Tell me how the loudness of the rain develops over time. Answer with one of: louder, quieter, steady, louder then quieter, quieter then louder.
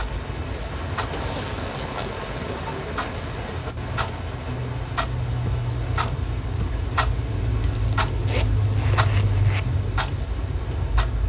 quieter.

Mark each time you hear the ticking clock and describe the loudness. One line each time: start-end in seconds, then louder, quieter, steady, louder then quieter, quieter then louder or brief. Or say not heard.
0.0-11.2 louder.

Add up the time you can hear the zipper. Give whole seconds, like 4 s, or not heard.
3 s.